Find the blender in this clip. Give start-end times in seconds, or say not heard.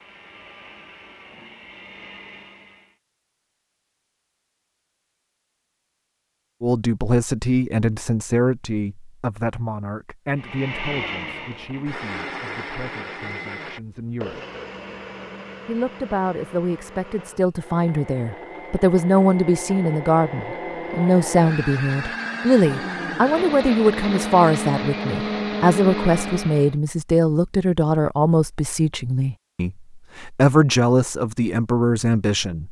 0.0-3.0, 10.3-26.8.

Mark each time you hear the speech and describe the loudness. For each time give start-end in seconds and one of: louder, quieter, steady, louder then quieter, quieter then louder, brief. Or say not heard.
6.6-14.4 quieter
15.7-32.6 steady.